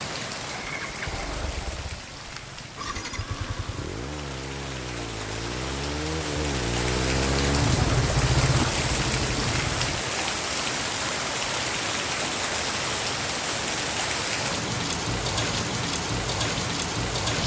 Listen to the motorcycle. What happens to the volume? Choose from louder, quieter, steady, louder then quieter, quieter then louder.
louder.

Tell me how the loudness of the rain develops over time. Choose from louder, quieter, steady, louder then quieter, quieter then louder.
louder.